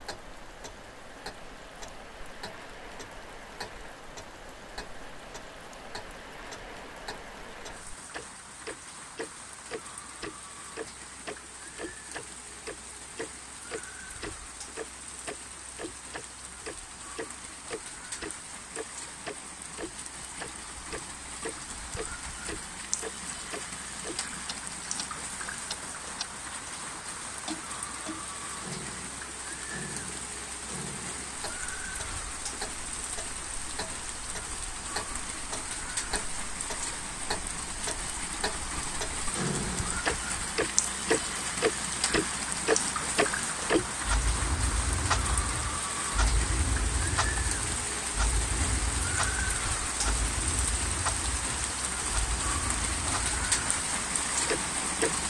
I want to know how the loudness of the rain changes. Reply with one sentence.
The volume of the rain goes up.